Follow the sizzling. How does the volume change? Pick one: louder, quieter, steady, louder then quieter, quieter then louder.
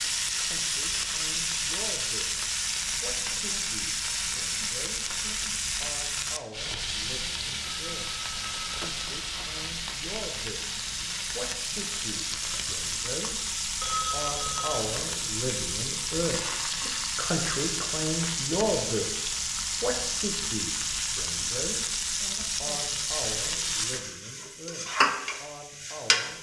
steady.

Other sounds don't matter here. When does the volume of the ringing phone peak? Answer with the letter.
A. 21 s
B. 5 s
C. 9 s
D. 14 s
D.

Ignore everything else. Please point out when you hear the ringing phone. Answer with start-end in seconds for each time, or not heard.
7.6-9.7, 13.8-14.8.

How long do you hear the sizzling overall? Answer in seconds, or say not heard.
26 s.